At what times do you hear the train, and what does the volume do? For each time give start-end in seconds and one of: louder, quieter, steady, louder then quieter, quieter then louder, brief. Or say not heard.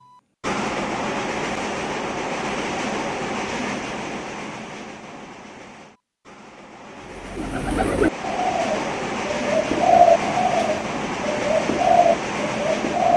0.0-13.1 quieter then louder.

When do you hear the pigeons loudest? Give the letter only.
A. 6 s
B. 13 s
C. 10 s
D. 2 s
C.